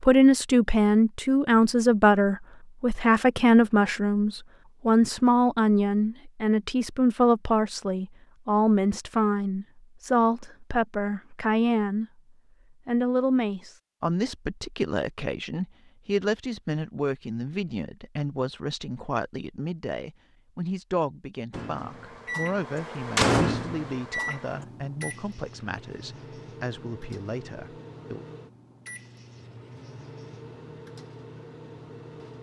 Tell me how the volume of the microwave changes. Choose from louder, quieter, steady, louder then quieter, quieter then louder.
quieter.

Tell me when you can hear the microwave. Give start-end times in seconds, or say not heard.
21.5-32.3.